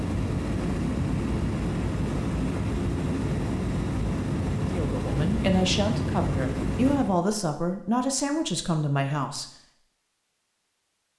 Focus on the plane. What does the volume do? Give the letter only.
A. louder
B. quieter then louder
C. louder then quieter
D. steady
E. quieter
D.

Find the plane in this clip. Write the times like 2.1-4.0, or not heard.
0.0-7.2.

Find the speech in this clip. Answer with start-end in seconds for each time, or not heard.
4.7-9.4.